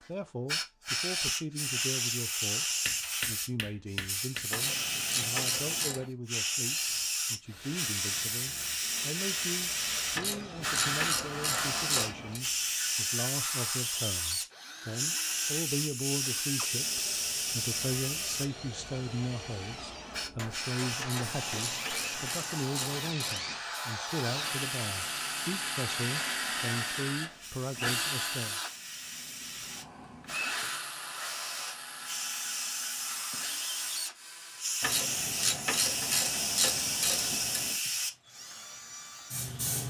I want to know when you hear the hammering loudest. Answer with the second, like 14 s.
3 s.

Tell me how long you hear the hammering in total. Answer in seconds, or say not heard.
4 s.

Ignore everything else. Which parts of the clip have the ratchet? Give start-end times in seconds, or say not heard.
4.5-6.1, 10.2-12.4, 21.0-23.6, 34.8-37.8.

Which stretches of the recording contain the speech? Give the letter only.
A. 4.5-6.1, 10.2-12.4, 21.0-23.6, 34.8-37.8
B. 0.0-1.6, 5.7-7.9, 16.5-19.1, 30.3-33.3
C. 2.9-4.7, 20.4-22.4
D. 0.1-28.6
D.